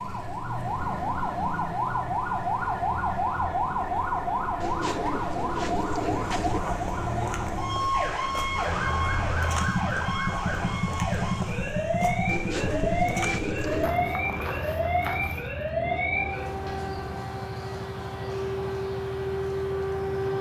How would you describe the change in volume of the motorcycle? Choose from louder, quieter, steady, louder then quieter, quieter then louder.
louder then quieter.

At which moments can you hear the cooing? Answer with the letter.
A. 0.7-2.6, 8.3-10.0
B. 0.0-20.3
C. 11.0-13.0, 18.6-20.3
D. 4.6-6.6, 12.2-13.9
D.